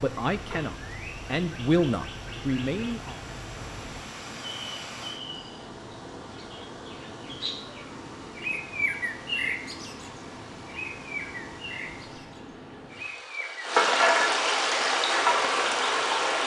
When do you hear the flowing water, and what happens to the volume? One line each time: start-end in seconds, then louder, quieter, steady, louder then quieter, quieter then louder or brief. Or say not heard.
0.0-16.4 louder.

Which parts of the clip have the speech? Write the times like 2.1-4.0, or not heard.
0.0-3.2.